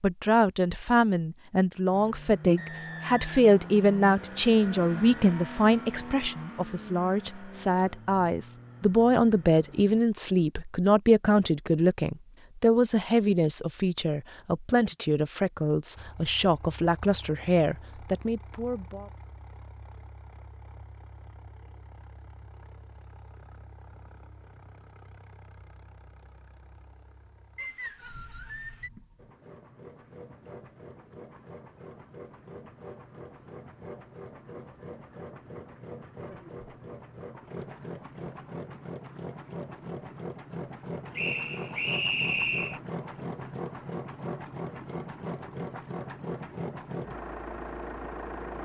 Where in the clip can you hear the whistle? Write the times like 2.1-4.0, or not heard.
2.5-3.9, 27.6-28.9, 41.1-42.8.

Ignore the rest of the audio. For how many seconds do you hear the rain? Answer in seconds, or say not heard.
not heard.